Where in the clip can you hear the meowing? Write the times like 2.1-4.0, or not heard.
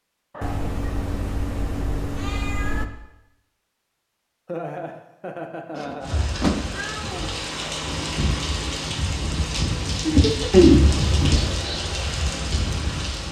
0.4-2.9, 5.8-7.2, 10.5-11.6.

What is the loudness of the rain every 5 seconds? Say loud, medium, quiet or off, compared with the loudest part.
off, loud, loud.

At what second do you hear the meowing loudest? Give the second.
11 s.